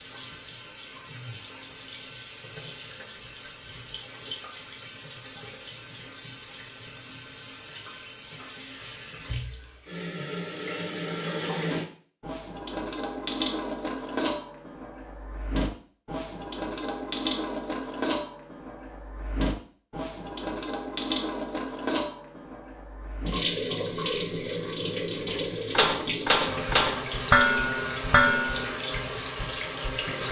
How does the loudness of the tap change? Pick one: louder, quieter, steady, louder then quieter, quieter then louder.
louder.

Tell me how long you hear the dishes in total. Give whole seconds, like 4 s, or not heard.
4 s.